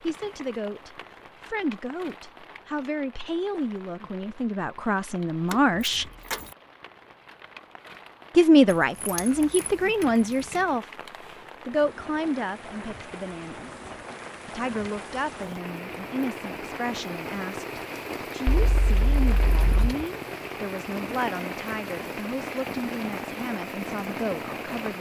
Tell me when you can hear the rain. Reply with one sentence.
The rain can be heard from 0.0 to 24.9 s.